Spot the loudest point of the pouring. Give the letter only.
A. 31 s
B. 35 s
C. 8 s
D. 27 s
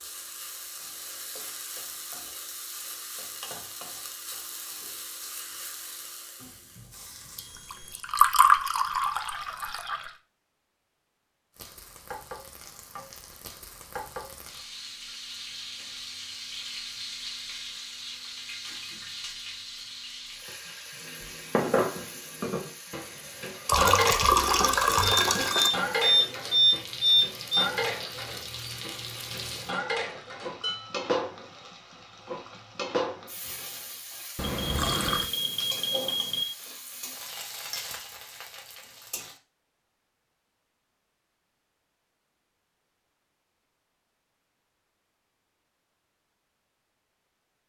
C.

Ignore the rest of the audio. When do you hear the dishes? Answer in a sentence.
The dishes can be heard from 21.0 to 31.1 s.